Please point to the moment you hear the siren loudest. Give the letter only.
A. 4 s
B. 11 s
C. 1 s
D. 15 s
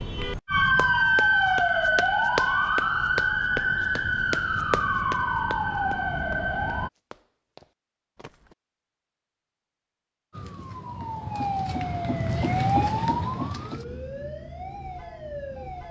C.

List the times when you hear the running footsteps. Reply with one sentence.
You can hear the running footsteps from 0.8 to 8.6 s.